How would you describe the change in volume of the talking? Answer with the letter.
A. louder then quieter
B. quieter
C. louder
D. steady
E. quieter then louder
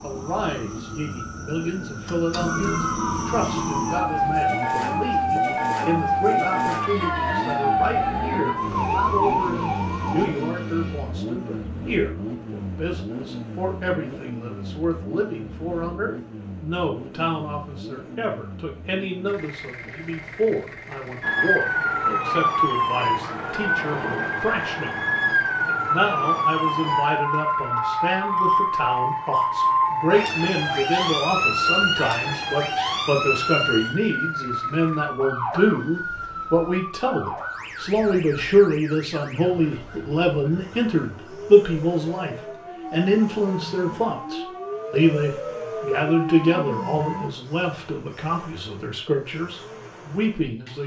C.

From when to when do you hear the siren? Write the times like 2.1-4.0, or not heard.
0.0-10.3, 21.2-47.3.